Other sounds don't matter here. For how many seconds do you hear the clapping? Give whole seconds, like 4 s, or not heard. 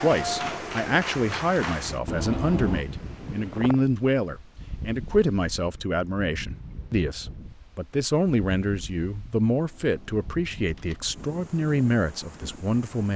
2 s.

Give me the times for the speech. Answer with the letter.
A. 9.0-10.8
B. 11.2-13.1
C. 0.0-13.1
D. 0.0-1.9
C.